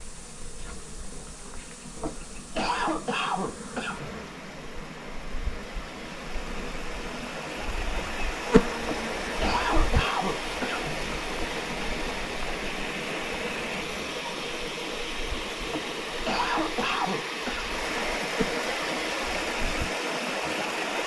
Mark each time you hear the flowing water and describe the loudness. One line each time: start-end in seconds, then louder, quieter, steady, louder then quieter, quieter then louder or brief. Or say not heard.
0.0-21.0 louder.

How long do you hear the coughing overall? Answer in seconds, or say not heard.
6 s.